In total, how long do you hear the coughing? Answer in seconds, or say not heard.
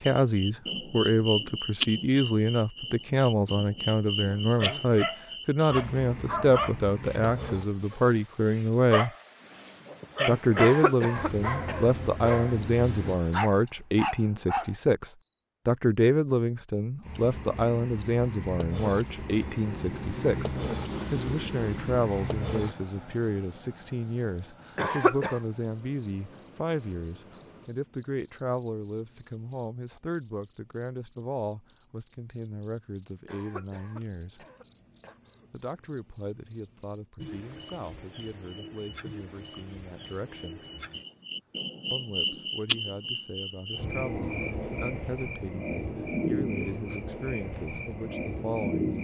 4 s.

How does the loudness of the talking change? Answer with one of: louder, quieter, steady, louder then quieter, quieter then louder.
quieter.